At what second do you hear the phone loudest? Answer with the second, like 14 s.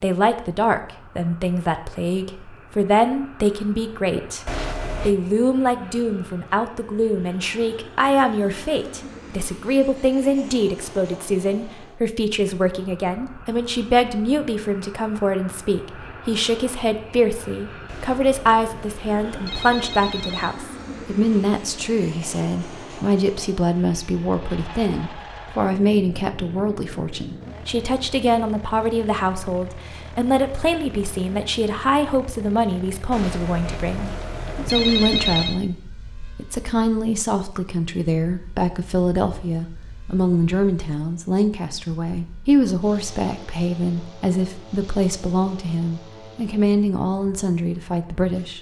35 s.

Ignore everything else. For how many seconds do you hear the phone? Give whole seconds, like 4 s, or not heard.
6 s.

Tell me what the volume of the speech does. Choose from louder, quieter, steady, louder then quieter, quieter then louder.
steady.